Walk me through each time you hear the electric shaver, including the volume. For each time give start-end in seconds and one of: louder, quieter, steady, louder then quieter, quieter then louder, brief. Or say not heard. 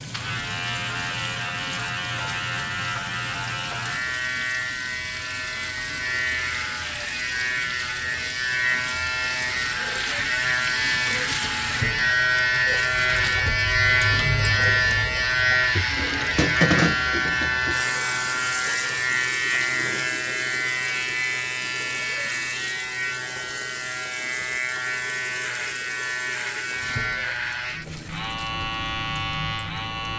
0.0-30.1 louder then quieter.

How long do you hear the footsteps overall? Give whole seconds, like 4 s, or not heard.
not heard.